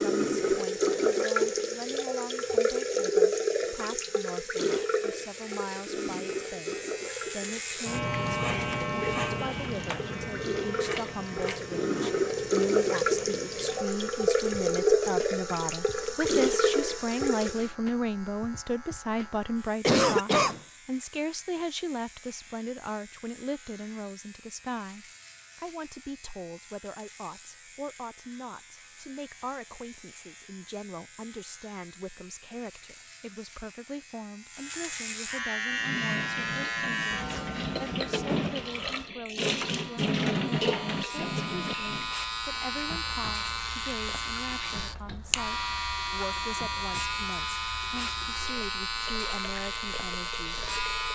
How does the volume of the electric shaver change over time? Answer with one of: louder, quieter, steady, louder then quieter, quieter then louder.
quieter then louder.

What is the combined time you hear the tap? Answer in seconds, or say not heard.
33 s.